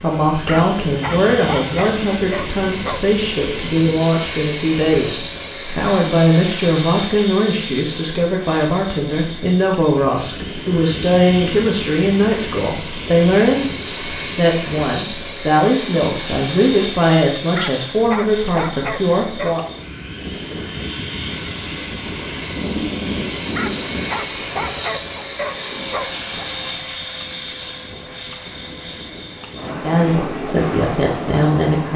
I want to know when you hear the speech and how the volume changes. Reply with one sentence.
You can hear the speech from 0.0 to 19.6 s, at a steady volume; and briefly from 29.7 to 31.9 s.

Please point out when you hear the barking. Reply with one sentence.
You can hear the barking from 0.5 to 3.1 s, from 17.6 to 19.6 s and from 23.5 to 26.2 s.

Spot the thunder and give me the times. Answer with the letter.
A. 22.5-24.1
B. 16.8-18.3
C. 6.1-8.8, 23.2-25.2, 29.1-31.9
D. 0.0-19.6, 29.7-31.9
A.